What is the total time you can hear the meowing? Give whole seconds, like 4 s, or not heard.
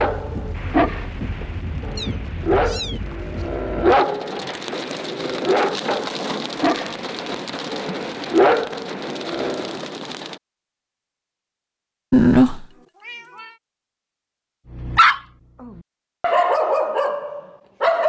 3 s.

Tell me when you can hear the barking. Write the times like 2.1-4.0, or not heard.
0.0-9.8, 14.7-18.0.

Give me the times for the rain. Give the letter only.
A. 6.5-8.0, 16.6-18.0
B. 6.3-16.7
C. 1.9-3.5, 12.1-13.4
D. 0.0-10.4
D.